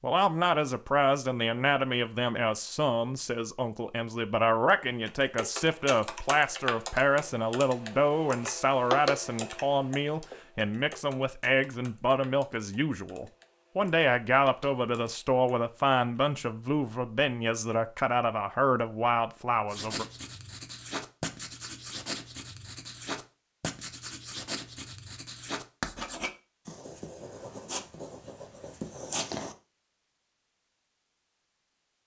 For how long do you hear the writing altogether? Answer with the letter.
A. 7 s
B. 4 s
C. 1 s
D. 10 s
D.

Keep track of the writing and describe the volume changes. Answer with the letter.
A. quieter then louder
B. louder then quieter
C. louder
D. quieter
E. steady
E.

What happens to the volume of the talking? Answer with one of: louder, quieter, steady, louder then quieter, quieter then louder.
steady.